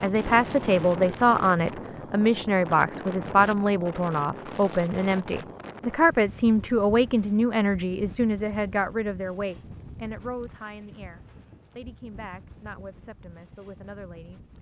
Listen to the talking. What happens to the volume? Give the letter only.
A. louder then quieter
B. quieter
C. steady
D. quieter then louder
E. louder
B.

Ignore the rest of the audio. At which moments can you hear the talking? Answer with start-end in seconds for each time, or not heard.
0.0-14.4.